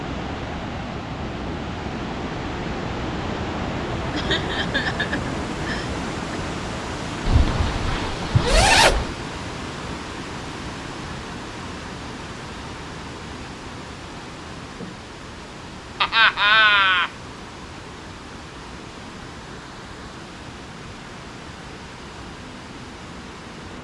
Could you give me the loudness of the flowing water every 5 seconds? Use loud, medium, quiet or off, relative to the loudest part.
loud, loud, medium, medium, medium.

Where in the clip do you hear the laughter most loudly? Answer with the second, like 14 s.
17 s.